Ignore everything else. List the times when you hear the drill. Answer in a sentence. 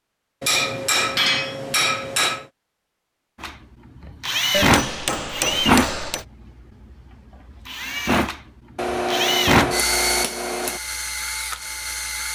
You can hear the drill from 3.4 to 6.0 s and from 7.7 to 12.3 s.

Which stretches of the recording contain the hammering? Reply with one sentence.
The hammering can be heard from 0.4 to 2.5 s, from 4.5 to 6.2 s and from 8.8 to 10.8 s.